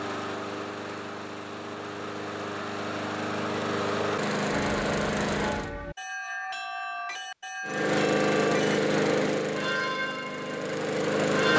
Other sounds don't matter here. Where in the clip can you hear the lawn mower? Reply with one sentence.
The lawn mower can be heard from 0.0 to 5.8 s and from 7.7 to 11.5 s.